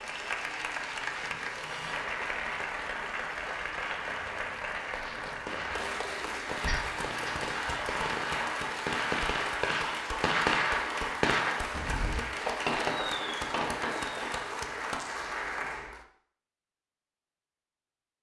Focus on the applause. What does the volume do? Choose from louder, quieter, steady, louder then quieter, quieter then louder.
steady.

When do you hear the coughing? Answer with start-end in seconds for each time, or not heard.
6.7-7.5.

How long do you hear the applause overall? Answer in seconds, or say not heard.
16 s.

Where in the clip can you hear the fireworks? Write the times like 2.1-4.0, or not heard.
4.9-14.4.